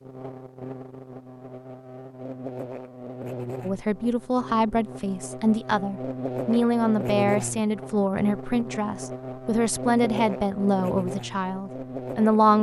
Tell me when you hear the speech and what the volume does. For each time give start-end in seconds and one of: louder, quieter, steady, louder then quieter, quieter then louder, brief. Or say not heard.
3.6-12.5 steady.